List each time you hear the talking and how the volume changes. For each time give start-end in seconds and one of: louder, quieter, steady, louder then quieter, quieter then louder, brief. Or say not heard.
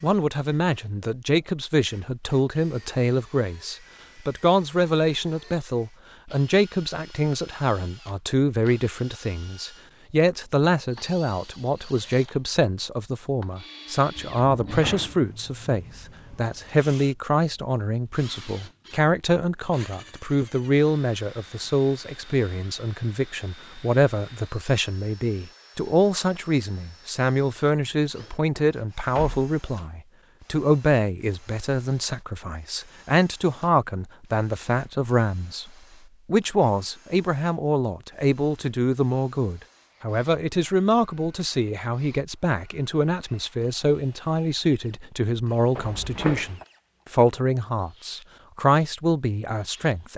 0.0-50.1 steady.